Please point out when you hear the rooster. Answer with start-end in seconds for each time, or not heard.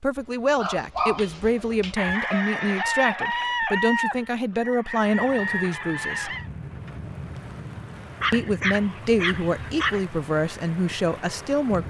1.9-6.5.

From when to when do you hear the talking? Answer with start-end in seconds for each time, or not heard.
0.0-6.3, 8.3-11.8.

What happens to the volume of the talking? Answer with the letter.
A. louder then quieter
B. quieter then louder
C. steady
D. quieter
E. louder
C.